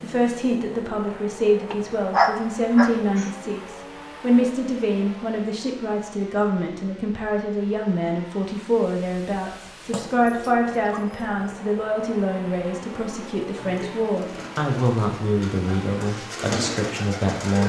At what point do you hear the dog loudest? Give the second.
2 s.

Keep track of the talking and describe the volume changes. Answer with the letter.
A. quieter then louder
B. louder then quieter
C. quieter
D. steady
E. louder
D.